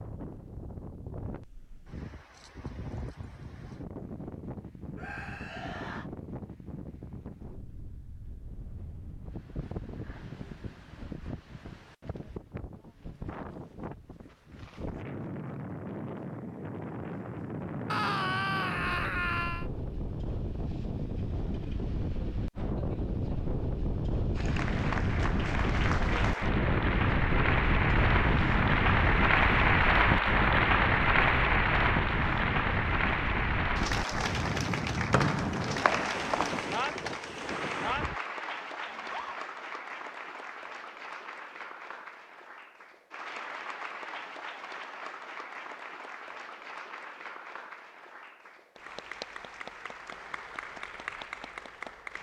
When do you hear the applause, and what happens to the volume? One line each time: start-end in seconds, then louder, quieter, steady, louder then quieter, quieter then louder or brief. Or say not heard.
24.4-52.1 quieter.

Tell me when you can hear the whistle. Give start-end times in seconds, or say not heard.
35.1-36.8.